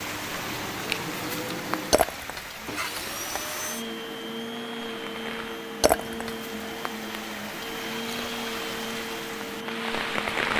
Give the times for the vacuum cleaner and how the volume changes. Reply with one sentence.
The vacuum cleaner can be heard from 0.0 to 10.5 s, at a steady volume.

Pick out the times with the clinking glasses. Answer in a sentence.
The clinking glasses can be heard from 1.9 to 3.4 s and from 5.8 to 6.3 s.